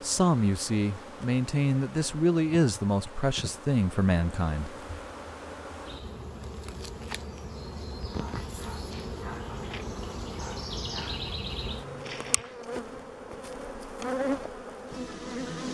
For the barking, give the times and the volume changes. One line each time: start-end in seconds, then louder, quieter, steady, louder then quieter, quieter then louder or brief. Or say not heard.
8.0-12.6 louder.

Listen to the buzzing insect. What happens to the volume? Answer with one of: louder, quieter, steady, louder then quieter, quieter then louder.
louder.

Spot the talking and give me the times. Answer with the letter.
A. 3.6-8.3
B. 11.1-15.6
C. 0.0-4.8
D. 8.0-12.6
C.